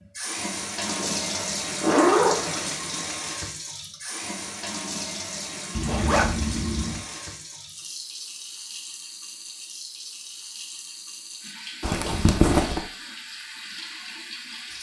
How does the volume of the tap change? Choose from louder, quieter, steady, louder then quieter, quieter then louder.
quieter.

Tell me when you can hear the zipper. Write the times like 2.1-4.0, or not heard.
0.8-2.7, 5.8-7.0, 11.8-12.8.